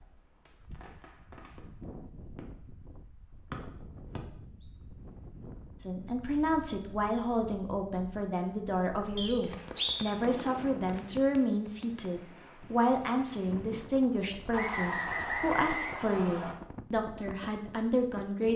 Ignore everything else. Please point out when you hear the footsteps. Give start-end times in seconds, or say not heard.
not heard.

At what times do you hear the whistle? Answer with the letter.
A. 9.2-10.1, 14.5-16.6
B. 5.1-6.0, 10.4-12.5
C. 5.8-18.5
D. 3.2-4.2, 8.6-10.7
A.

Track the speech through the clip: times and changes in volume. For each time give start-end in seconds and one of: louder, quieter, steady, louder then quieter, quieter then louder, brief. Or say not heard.
5.8-18.5 steady.